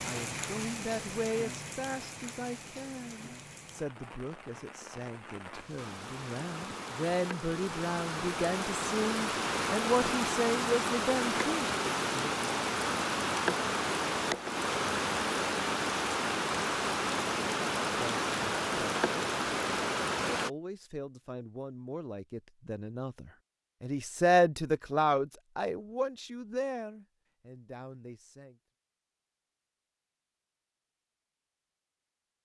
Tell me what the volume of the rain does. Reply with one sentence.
The loudness of the rain goes up.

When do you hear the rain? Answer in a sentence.
The rain can be heard from 0.0 to 20.5 s.